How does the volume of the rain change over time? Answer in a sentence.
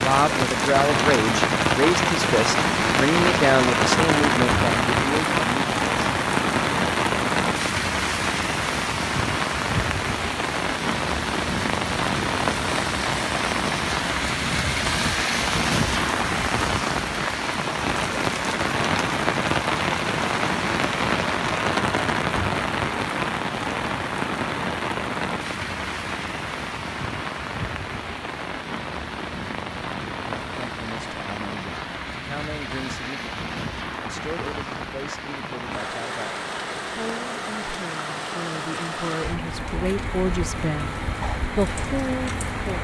The loudness of the rain goes down.